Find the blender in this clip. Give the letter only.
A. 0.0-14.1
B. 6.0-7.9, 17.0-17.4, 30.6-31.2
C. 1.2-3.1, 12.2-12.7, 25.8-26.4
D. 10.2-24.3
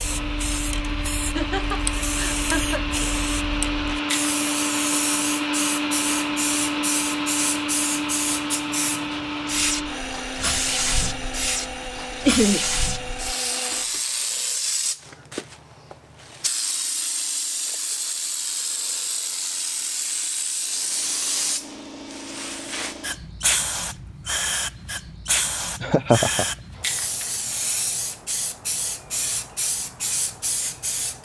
A.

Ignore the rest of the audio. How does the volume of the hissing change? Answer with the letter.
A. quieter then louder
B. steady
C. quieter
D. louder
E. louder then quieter
B.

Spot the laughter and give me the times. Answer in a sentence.
You can hear the laughter from 1.2 to 3.1 s, from 12.2 to 12.7 s and from 25.8 to 26.4 s.